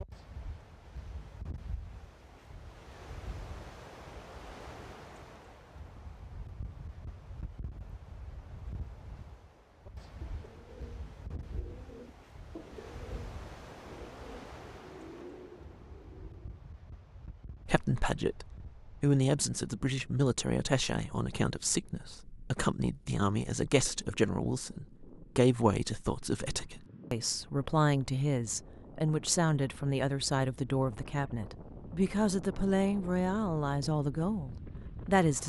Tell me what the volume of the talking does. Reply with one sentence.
The loudness of the talking stays about the same.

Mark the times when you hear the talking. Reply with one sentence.
You can hear the talking from 17.6 to 35.4 s.